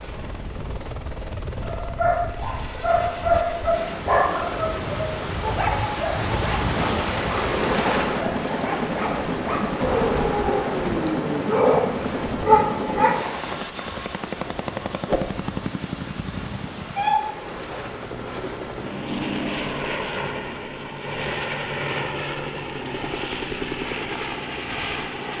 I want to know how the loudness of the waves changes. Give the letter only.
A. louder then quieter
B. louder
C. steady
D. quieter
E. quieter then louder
A.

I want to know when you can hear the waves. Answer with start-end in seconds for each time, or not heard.
0.0-19.9.